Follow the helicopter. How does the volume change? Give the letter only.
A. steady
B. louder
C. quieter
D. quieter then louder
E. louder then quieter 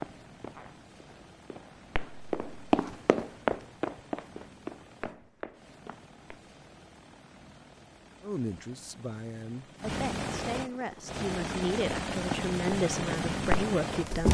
B.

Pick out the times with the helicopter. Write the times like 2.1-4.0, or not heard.
0.0-14.2.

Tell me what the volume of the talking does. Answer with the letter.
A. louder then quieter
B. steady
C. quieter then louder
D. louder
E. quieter
D.